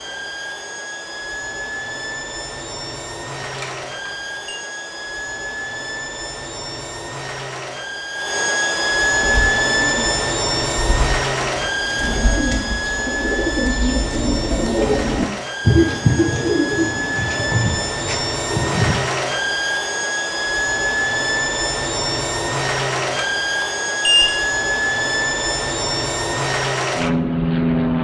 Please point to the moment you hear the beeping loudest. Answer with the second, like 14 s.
24 s.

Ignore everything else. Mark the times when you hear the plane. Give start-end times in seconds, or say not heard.
0.0-27.9.